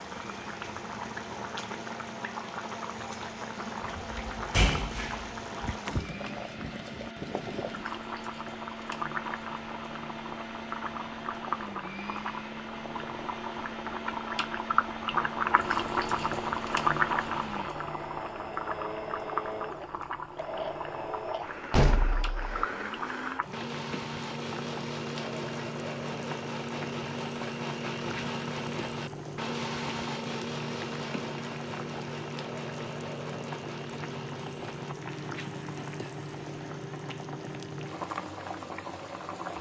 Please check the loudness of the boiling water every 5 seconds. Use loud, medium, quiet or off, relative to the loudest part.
medium, medium, medium, loud, medium, medium, medium, medium.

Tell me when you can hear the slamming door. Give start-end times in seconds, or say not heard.
4.0-6.2, 21.7-22.6.